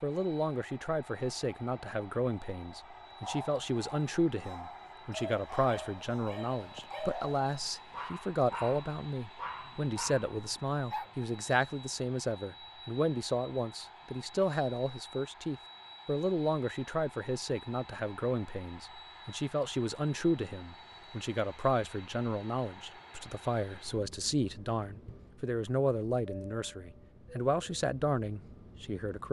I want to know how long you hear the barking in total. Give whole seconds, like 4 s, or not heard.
8 s.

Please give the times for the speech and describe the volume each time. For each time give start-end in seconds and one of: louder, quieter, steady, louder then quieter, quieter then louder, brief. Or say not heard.
0.0-29.2 steady.